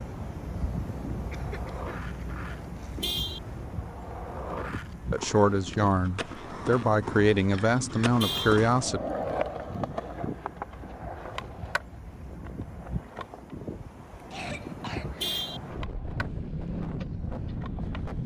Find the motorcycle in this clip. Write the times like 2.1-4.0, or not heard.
16.1-18.2.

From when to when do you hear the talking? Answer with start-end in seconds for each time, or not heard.
5.1-9.0.